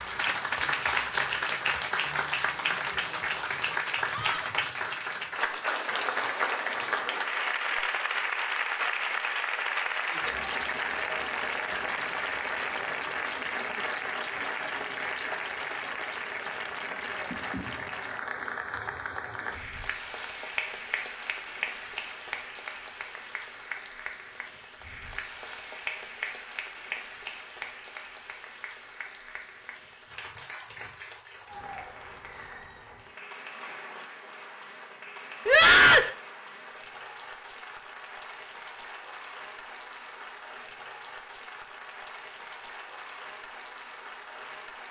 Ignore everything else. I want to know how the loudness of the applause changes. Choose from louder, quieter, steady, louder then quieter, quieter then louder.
quieter.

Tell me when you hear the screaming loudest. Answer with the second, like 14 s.
36 s.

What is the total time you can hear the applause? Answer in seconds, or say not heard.
45 s.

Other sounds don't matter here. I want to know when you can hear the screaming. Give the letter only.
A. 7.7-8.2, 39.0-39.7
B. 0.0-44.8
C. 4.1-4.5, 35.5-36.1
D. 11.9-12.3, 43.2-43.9
C.